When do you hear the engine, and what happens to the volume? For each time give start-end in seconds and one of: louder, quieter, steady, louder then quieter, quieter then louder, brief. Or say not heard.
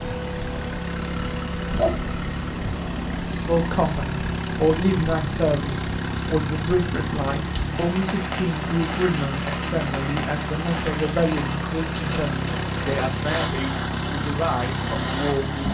0.0-15.6 steady.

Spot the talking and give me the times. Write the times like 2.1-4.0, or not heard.
3.5-15.6.